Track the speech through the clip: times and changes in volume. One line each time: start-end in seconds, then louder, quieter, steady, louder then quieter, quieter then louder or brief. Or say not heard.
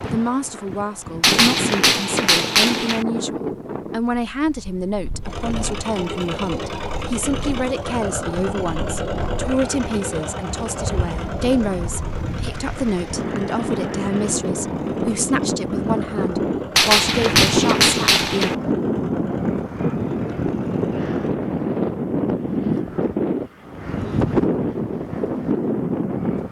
0.0-18.6 steady.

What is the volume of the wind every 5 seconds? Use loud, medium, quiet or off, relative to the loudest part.
medium, quiet, medium, loud, loud, loud.